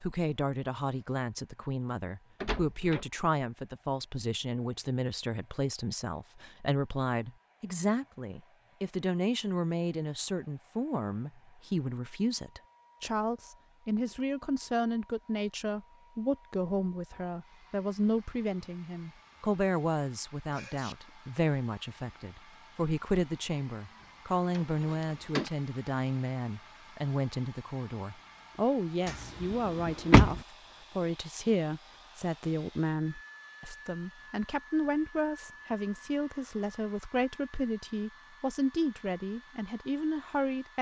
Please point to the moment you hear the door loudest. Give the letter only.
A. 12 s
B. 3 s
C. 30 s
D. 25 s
C.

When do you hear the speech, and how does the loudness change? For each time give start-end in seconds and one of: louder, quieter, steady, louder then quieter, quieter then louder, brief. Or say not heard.
0.0-40.7 steady.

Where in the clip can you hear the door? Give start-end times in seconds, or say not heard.
2.4-3.0, 24.5-25.5, 29.9-30.4.